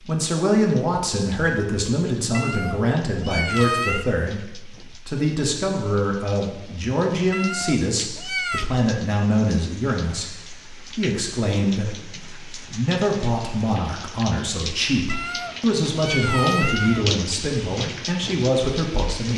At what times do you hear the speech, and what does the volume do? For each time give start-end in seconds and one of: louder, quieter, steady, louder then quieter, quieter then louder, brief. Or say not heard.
0.1-19.3 steady.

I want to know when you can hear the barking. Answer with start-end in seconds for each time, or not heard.
not heard.